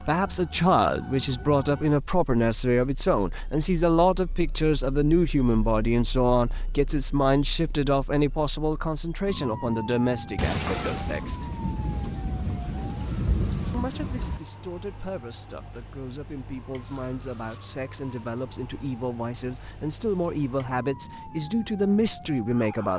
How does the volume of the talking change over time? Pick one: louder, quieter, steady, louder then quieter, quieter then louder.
quieter then louder.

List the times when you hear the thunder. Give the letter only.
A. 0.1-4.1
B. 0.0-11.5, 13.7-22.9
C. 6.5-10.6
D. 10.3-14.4
D.